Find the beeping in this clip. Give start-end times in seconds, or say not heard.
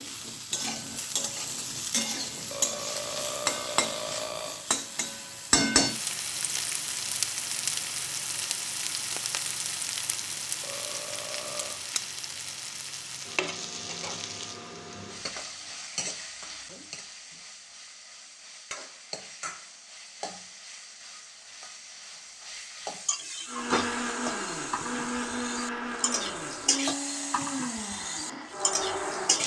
not heard.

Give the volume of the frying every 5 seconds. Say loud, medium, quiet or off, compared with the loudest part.
loud, loud, medium, medium, medium, loud.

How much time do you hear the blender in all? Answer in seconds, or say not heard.
6 s.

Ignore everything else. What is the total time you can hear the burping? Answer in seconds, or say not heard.
4 s.